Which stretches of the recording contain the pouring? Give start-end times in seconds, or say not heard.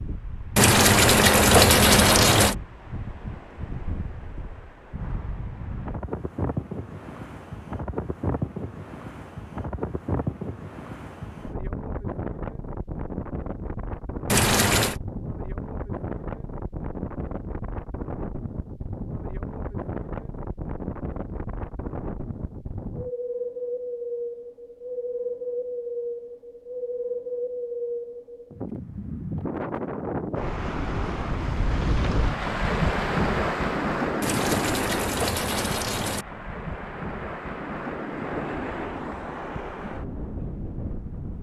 0.6-2.5, 14.2-14.9, 34.2-36.2.